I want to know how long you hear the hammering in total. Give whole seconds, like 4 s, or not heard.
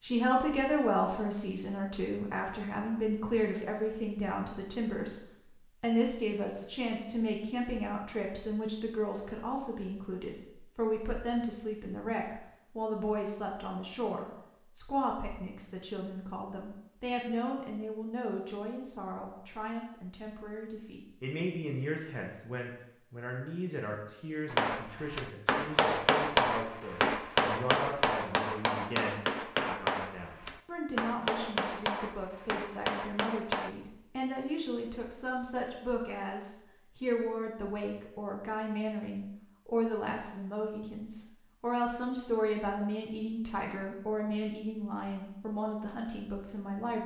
9 s.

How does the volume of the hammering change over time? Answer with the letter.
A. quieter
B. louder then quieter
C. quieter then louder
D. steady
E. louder
A.